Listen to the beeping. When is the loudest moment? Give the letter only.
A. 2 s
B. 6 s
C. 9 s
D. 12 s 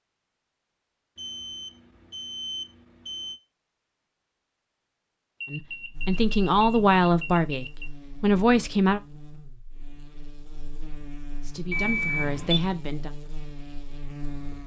D.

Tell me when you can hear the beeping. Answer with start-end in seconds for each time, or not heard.
1.1-3.4, 5.4-7.9, 11.7-12.6.